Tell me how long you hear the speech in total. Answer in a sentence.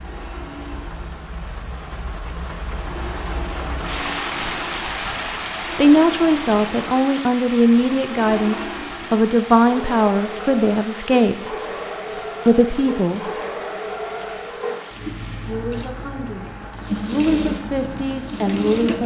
The speech can be heard for 10 seconds in total.